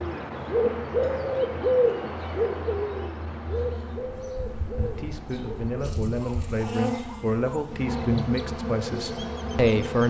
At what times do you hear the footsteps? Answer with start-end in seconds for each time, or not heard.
not heard.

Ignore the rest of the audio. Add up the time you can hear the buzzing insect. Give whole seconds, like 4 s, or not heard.
10 s.